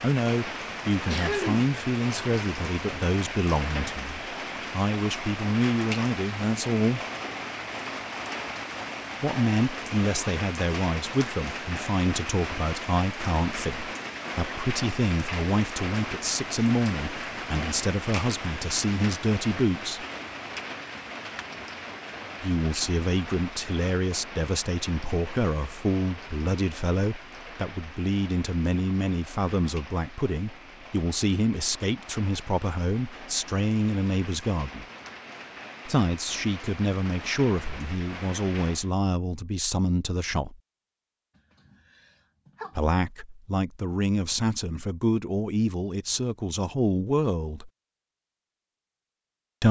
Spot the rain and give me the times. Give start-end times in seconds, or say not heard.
0.0-38.9.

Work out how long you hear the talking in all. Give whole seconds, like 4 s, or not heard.
40 s.